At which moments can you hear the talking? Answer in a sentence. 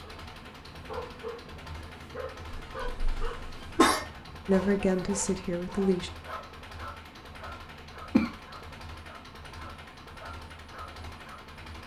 You can hear the talking from 4.5 to 6.1 s.